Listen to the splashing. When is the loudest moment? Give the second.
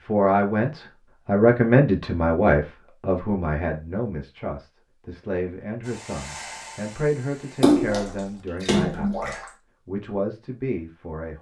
8 s.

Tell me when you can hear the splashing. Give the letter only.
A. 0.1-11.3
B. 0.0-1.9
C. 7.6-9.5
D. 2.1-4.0
C.